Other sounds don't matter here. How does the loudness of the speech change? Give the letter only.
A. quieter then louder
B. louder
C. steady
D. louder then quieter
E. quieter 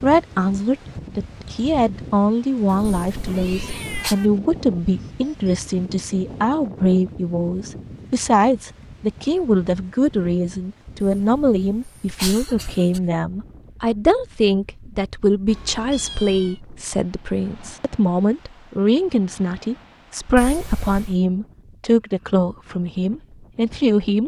C.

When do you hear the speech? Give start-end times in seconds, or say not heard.
0.0-24.2.